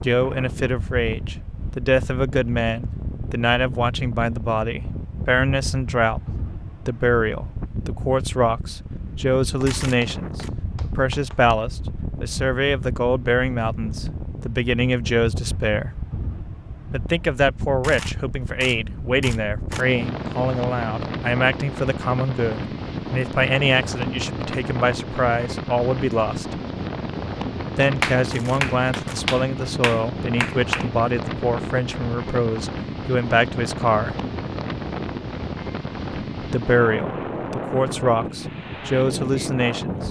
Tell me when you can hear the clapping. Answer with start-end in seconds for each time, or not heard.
9.8-11.6, 28.0-30.9.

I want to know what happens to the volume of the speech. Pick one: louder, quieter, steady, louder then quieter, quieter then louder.
steady.